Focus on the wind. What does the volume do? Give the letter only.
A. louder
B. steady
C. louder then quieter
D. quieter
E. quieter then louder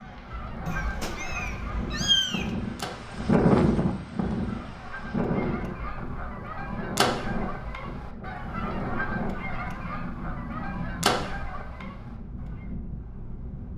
C.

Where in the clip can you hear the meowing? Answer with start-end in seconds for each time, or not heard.
0.7-2.5.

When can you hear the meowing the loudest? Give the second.
2 s.